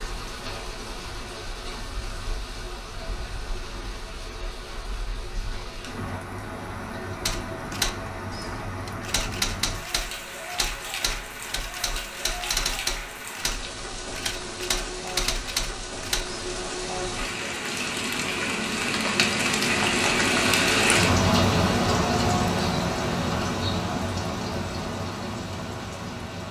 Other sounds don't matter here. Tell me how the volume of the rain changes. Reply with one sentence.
The volume of the rain goes up.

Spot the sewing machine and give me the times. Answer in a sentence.
The sewing machine can't be heard in this clip.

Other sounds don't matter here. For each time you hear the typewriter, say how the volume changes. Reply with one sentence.
You can hear the typewriter from 7.2 to 16.4 s, at a steady volume.